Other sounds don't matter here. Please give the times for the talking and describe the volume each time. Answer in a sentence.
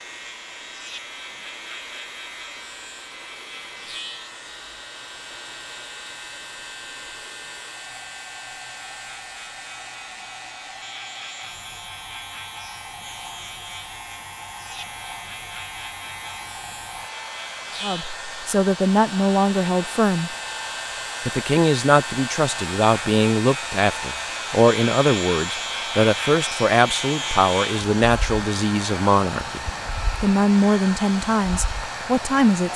The talking can be heard briefly from 17.8 to 20.4 s; and from 21.2 to 32.7 s, at a steady volume.